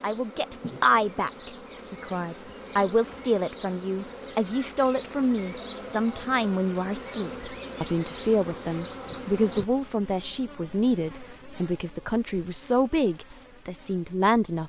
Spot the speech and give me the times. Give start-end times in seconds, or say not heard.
0.0-14.6.